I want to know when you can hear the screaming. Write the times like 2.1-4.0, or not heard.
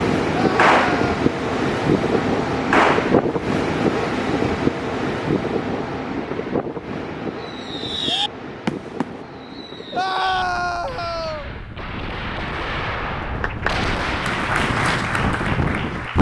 0.3-1.2, 9.9-11.5.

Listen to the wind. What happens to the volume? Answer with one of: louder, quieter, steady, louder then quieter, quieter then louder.
quieter then louder.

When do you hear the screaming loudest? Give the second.
10 s.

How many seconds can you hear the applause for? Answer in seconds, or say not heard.
3 s.